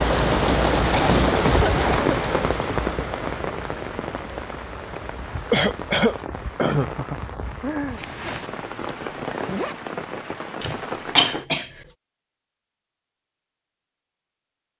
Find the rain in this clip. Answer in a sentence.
The rain can be heard from 0.0 to 11.4 s.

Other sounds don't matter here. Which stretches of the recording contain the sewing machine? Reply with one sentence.
The sewing machine can't be heard in this clip.